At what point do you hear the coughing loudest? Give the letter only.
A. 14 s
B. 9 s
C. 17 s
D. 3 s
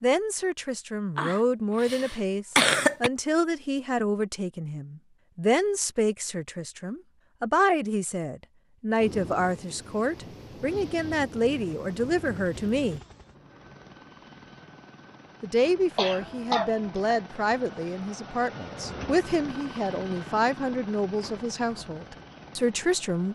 D.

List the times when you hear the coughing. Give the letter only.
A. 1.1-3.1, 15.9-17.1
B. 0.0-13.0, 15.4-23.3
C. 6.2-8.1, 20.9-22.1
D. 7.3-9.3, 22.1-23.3
A.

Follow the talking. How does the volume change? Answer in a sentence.
The loudness of the talking stays about the same.